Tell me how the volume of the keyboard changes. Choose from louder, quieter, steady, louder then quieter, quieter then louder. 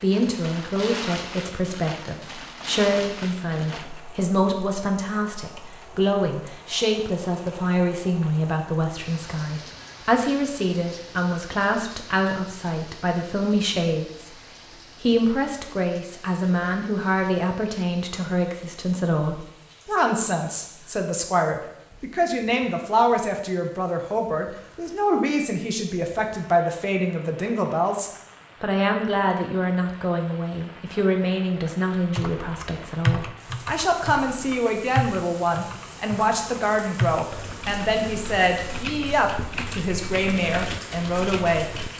quieter.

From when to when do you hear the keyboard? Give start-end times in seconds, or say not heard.
31.9-41.9.